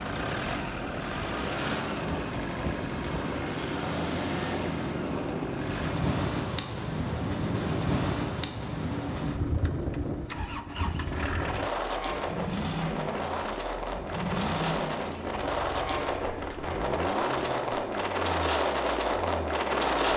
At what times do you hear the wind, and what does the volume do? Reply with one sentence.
The wind can be heard from 0.0 to 20.1 s, getting louder.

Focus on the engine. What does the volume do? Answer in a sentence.
The loudness of the engine goes down.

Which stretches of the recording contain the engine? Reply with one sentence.
The engine can be heard from 0.0 to 20.1 s.